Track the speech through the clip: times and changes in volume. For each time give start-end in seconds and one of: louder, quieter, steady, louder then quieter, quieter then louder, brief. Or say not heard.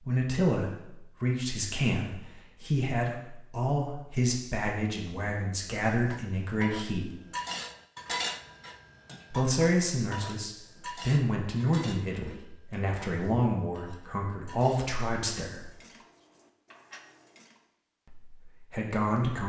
0.0-7.2 steady
9.3-15.7 quieter then louder
18.1-19.4 brief.